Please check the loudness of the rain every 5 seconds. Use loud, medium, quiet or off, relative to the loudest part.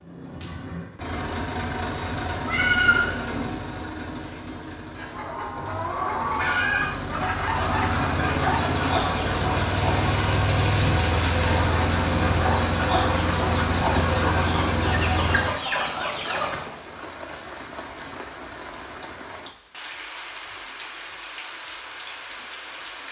off, loud, loud, medium, medium.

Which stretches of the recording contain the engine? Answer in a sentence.
The engine can be heard from 0.0 to 15.6 s.